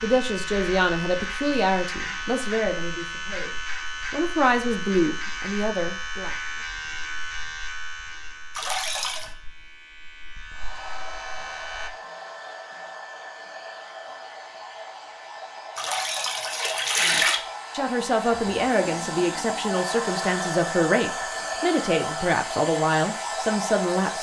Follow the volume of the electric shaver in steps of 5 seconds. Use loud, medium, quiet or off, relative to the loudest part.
loud, loud, medium, off, off.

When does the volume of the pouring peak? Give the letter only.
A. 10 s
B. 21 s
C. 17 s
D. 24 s
C.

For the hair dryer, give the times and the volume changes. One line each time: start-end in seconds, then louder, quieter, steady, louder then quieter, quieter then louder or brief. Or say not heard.
10.5-24.1 louder.